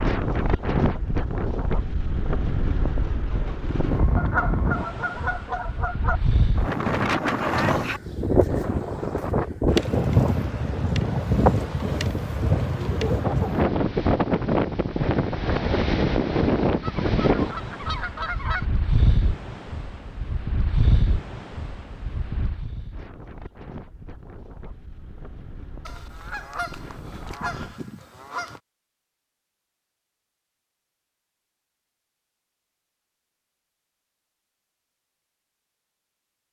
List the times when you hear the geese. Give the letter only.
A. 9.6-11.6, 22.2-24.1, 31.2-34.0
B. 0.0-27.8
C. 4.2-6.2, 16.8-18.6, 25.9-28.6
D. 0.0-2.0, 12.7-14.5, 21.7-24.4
C.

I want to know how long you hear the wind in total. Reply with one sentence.
You can hear the wind for 28 seconds altogether.